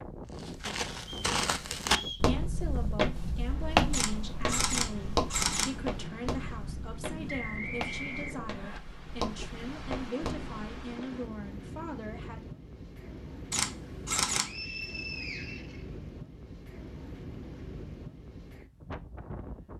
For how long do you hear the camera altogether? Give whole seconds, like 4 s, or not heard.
3 s.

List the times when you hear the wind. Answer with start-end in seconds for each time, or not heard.
0.0-19.7.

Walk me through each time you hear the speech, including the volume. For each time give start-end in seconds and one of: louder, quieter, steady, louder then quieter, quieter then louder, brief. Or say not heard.
2.1-12.4 steady.